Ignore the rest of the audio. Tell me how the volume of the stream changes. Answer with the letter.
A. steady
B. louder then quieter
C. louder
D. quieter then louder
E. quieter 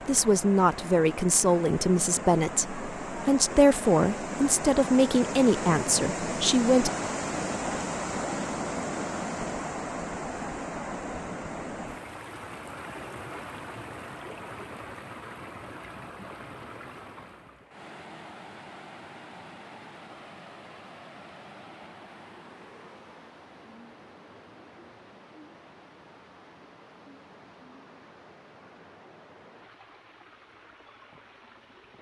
E.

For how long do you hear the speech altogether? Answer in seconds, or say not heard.
7 s.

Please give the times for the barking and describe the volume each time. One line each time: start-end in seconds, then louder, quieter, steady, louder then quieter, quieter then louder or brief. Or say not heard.
not heard.